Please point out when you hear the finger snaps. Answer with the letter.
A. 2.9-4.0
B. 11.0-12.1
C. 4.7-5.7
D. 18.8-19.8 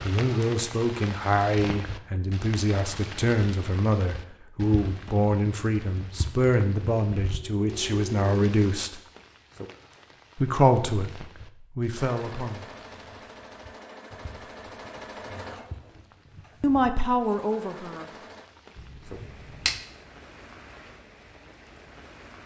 D.